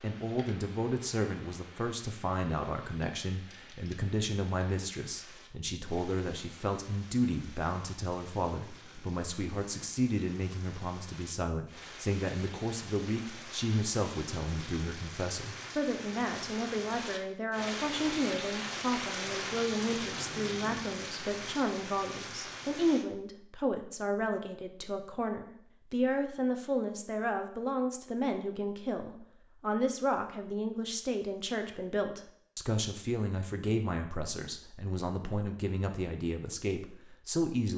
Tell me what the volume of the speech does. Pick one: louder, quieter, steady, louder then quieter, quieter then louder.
steady.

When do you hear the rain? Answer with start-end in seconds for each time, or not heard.
0.0-23.1.